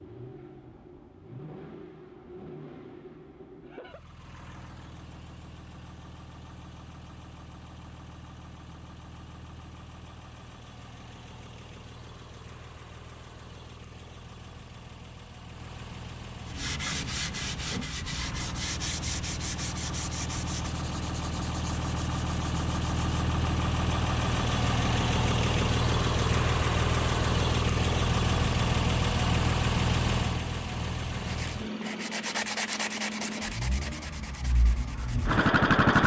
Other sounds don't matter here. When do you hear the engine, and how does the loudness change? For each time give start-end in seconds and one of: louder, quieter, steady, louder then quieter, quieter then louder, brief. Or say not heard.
0.0-36.0 louder.